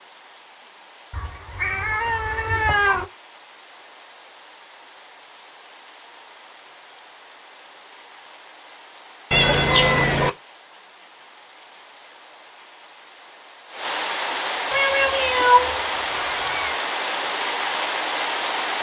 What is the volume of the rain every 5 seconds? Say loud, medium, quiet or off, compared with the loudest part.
quiet, quiet, medium, loud.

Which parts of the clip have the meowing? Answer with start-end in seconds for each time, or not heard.
1.1-3.0, 9.3-10.3, 14.7-16.8.